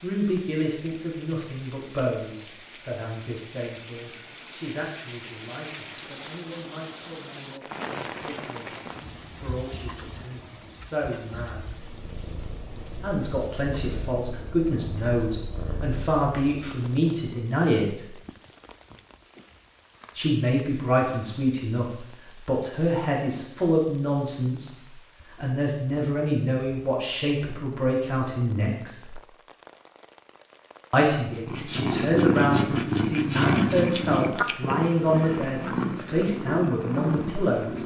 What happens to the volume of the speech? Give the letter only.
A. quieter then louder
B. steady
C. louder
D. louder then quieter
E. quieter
C.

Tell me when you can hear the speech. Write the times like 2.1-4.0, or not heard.
0.0-11.8, 13.0-18.1, 20.1-29.1, 30.9-37.8.